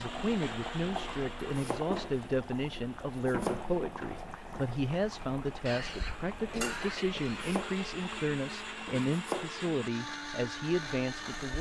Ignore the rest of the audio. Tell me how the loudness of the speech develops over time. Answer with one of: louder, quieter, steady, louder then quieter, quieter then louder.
steady.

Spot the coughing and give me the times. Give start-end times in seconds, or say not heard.
5.7-7.6.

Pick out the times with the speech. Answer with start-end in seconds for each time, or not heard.
0.0-11.5.